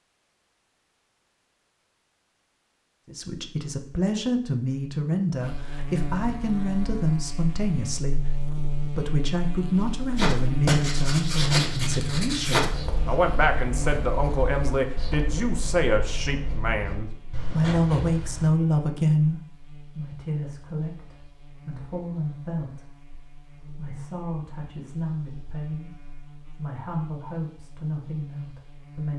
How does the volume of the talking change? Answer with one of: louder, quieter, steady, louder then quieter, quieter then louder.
quieter.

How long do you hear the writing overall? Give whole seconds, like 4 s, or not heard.
8 s.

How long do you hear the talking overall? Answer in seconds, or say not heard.
26 s.